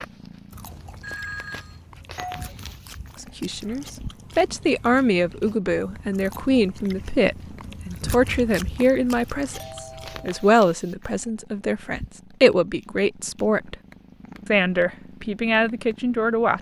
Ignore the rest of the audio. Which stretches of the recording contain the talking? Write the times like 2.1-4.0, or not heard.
3.2-13.8, 14.4-16.5.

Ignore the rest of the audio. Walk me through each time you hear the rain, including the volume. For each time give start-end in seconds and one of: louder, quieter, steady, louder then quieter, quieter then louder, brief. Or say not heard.
not heard.